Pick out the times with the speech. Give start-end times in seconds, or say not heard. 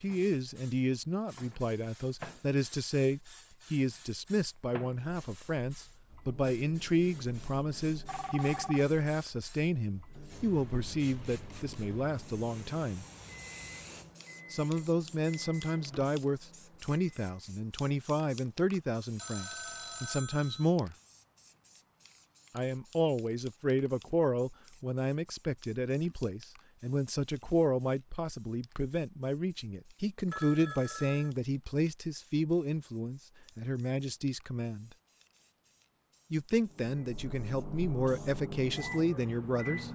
0.0-13.1, 14.5-20.9, 22.5-34.9, 36.3-39.9.